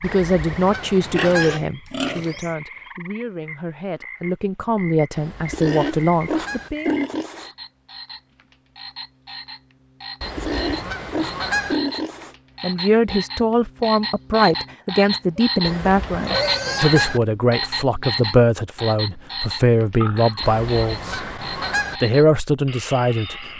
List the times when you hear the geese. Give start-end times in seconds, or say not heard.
0.0-1.6, 5.2-6.7, 10.2-11.8, 15.7-17.2, 20.4-22.0.